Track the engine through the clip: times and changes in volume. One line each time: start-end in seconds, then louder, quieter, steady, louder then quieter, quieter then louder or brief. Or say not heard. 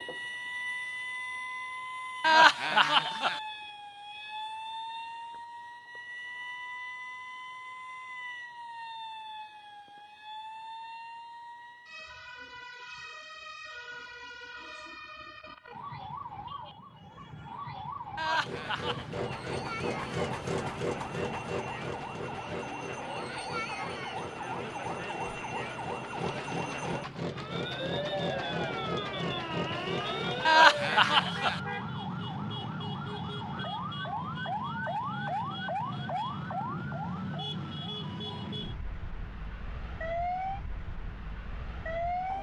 18.4-30.5 quieter then louder.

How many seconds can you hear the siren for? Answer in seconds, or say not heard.
42 s.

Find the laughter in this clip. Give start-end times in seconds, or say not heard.
2.2-3.4, 18.1-19.2, 30.4-31.6.